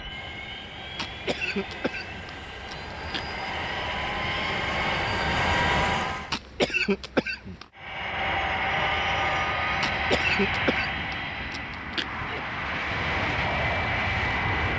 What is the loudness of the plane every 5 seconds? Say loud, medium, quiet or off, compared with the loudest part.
medium, loud, loud.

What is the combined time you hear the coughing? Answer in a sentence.
The coughing can be heard for 6 seconds in total.